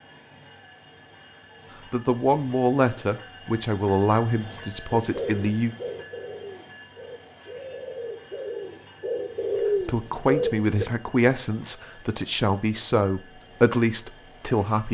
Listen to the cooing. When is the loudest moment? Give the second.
10 s.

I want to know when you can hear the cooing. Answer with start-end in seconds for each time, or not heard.
5.0-10.8.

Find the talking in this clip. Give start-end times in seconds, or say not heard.
1.9-5.8, 9.8-14.9.